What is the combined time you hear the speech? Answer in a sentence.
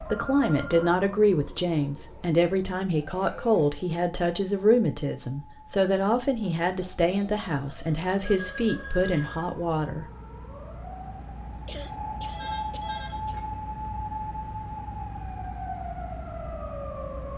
You can hear the speech for 10 seconds altogether.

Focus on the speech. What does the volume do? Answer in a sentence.
The volume of the speech stays about the same.